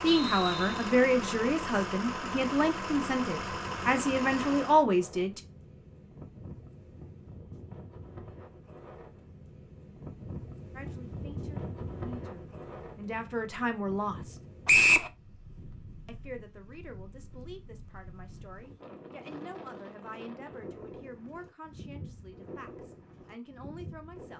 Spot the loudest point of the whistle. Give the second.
15 s.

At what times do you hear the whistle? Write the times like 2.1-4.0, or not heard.
0.1-0.9, 14.7-15.1.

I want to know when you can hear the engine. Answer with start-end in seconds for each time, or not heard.
0.0-4.8.